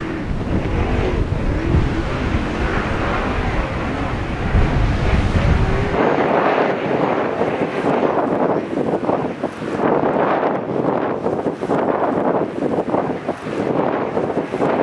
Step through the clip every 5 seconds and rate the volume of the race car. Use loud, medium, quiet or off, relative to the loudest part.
loud, loud, medium.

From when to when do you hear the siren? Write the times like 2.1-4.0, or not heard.
not heard.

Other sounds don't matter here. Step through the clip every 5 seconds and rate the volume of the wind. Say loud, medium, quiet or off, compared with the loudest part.
medium, loud, loud.